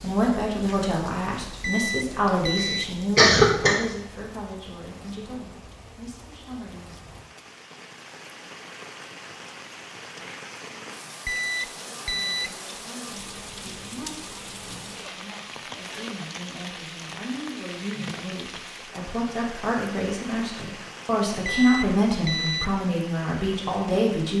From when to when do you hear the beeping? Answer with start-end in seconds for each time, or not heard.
1.6-3.0, 11.2-12.7, 21.4-22.8.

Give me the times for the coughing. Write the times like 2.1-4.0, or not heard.
2.2-3.8.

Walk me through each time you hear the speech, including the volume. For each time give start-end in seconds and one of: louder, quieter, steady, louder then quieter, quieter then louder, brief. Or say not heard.
0.0-7.0 quieter
12.1-24.3 louder.